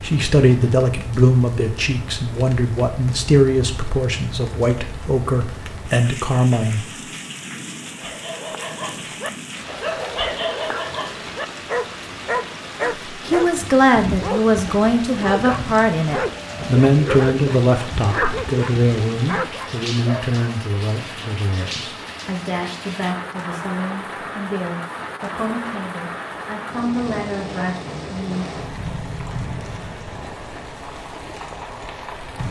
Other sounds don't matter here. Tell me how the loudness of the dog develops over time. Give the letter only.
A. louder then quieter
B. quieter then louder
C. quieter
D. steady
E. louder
D.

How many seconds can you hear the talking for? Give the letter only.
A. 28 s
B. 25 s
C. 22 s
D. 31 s
C.